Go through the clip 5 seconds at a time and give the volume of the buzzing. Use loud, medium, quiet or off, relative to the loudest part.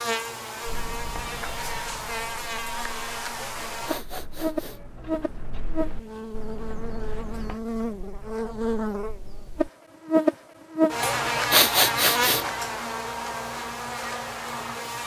medium, medium, loud.